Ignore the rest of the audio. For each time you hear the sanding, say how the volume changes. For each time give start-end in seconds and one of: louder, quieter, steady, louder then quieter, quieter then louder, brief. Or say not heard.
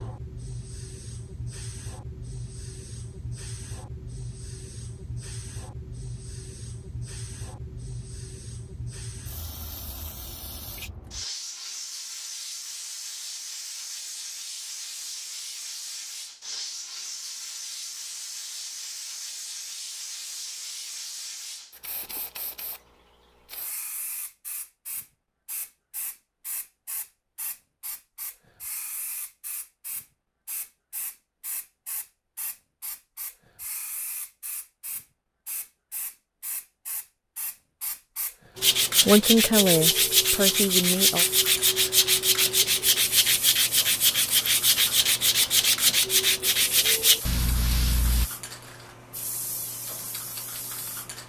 38.5-48.3 steady.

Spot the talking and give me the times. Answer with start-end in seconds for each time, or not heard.
39.0-41.2.